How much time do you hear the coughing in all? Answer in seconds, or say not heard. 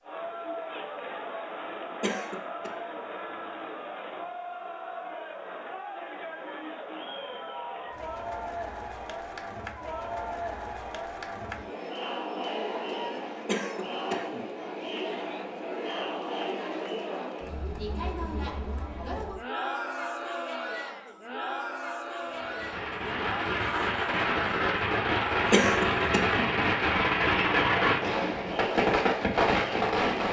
3 s.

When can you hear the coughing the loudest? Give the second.
26 s.